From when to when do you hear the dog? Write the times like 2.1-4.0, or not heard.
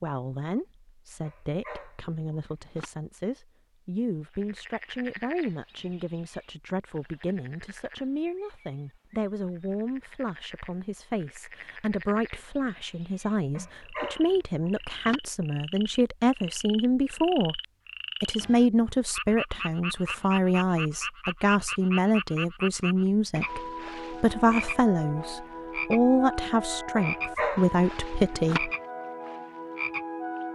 1.2-2.9, 13.6-15.2, 26.9-28.6.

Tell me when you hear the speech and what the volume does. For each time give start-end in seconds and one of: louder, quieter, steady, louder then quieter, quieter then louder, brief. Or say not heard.
0.0-17.6 louder
18.2-28.7 steady.